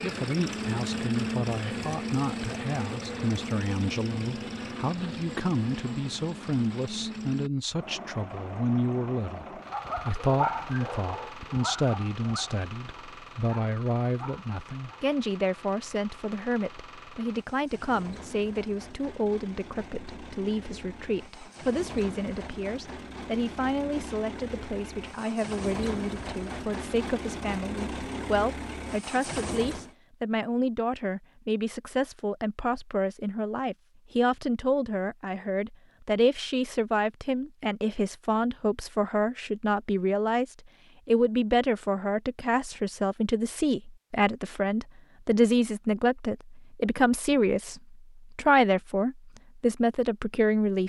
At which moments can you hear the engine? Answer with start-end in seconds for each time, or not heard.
0.0-29.9.